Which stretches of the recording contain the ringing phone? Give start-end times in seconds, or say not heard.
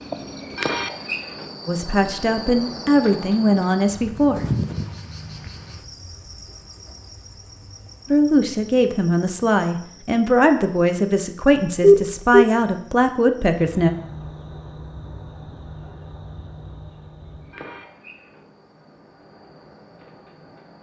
11.8-12.4.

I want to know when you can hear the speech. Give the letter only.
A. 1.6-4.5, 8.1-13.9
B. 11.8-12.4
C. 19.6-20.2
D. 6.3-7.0
A.